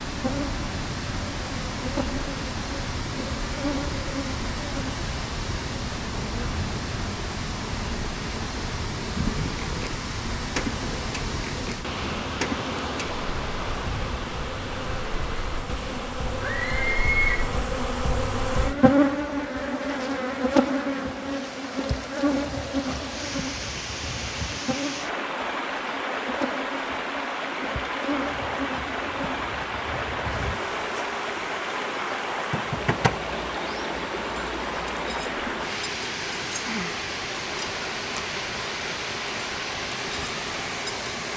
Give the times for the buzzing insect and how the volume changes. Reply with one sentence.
You can hear the buzzing insect from 0.1 to 41.3 s, getting louder then quieter.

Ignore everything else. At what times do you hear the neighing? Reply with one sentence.
The neighing can be heard from 16.4 to 17.4 s.